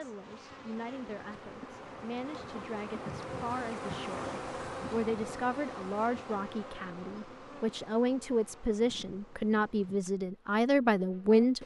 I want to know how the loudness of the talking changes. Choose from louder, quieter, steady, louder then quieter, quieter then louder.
louder.